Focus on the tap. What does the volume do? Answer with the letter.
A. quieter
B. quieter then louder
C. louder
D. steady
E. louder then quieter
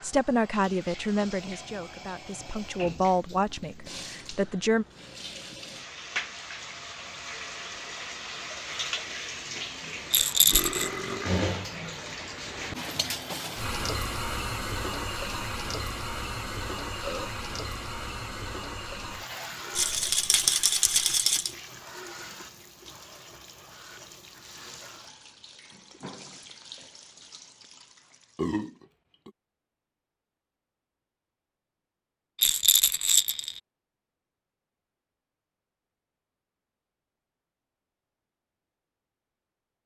E.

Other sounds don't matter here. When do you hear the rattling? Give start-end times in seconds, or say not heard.
10.1-10.9, 19.8-21.5, 32.4-33.6.